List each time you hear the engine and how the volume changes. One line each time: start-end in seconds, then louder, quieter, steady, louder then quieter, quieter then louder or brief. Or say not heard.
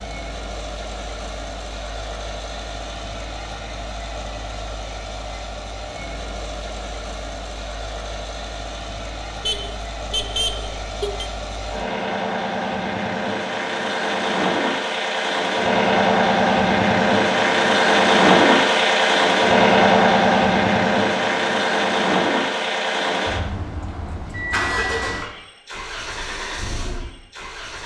0.0-27.8 louder then quieter.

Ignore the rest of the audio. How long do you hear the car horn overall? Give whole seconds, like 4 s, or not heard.
2 s.